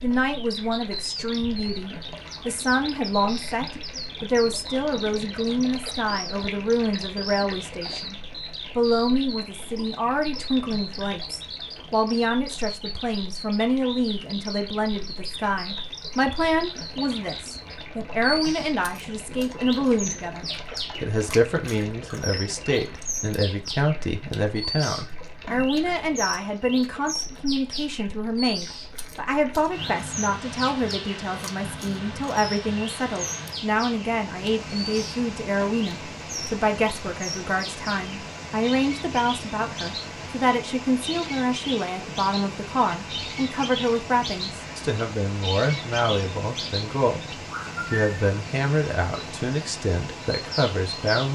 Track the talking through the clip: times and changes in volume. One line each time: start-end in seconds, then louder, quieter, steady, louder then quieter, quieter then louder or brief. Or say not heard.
0.0-51.3 steady.